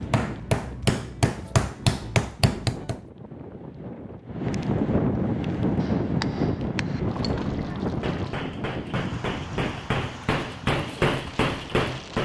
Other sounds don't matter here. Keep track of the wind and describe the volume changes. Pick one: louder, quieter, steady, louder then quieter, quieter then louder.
louder then quieter.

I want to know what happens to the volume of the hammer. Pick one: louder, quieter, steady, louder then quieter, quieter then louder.
quieter then louder.